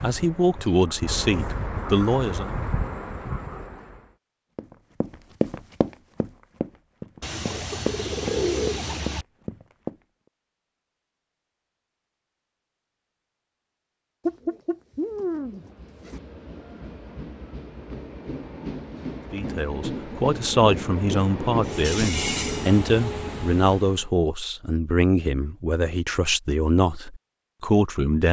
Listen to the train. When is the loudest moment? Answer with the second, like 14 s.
22 s.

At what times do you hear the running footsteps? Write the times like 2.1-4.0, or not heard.
4.5-9.9.